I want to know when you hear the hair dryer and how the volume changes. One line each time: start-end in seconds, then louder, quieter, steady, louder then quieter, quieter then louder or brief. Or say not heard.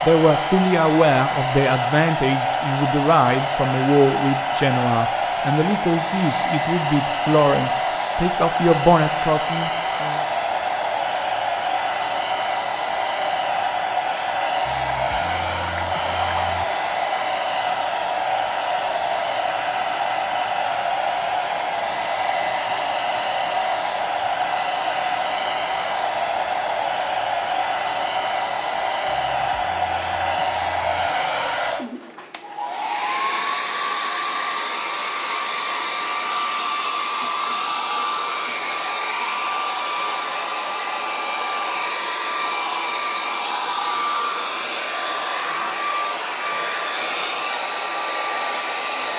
0.0-49.1 steady.